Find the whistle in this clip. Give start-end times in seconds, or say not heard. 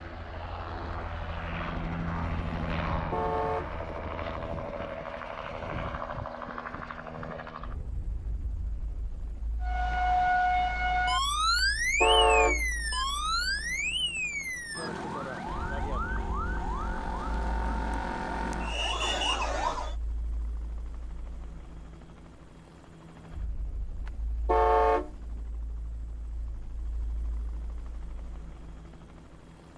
not heard.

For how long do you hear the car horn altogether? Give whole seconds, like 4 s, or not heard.
2 s.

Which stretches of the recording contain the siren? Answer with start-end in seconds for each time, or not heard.
9.6-19.9.